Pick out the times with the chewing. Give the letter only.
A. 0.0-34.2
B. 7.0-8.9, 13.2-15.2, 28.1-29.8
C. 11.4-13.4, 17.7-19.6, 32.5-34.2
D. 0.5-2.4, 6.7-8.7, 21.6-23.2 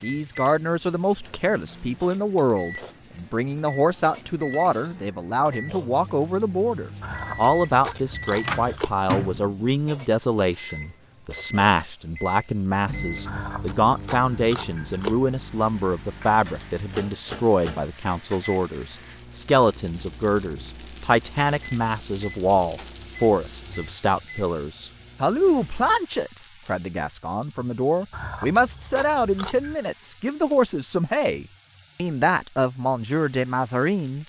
B.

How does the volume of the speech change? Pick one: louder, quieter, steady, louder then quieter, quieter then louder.
steady.